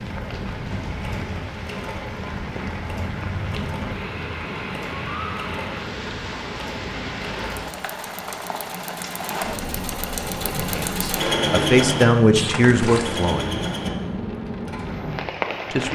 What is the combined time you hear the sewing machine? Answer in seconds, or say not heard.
16 s.